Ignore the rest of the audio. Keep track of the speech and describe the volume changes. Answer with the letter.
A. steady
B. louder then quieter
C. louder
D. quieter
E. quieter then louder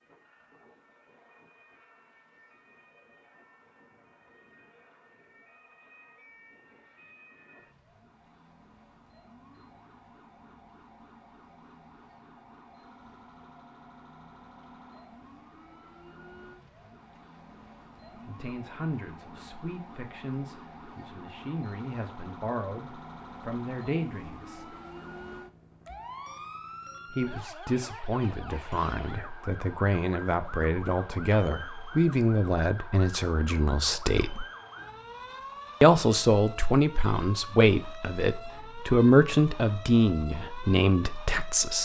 C.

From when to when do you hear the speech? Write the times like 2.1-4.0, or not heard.
18.2-24.8, 27.1-34.5, 35.8-41.8.